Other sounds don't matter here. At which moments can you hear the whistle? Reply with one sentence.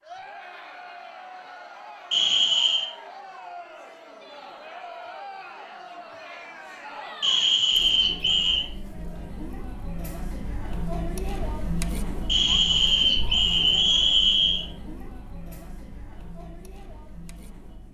You can hear the whistle from 2.1 to 2.9 s, from 7.2 to 8.7 s and from 12.2 to 14.7 s.